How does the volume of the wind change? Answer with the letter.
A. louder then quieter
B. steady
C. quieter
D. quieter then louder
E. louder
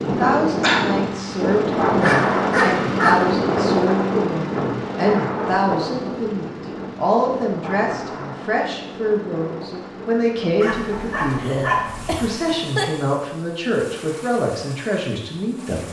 C.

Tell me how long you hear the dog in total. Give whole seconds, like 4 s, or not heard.
3 s.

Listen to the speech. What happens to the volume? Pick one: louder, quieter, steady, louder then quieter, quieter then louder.
steady.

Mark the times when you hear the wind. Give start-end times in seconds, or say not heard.
0.0-12.7.